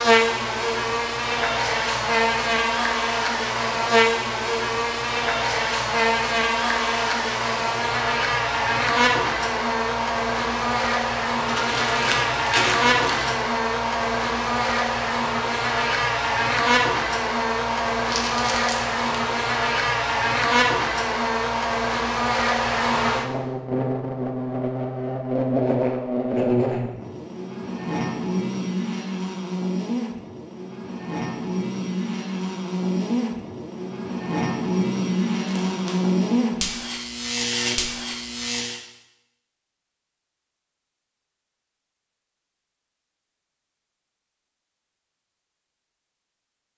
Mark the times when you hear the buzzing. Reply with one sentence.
The buzzing can be heard from 0.0 to 38.8 s.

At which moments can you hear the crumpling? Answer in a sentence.
The crumpling can be heard from 11.4 to 13.3 s, from 18.1 to 19.3 s and from 35.5 to 36.1 s.